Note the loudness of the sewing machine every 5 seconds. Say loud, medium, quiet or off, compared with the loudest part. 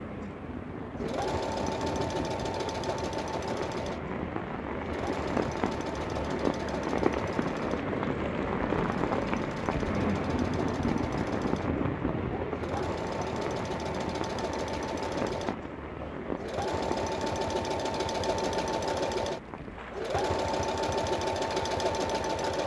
medium, medium, medium, loud, loud.